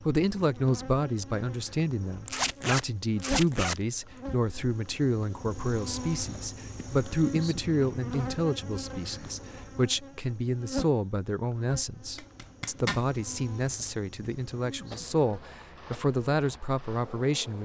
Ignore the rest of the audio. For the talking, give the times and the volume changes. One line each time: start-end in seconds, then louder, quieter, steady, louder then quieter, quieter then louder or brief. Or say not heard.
0.0-17.6 steady.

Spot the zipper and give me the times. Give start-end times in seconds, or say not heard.
2.2-3.8, 12.2-13.0.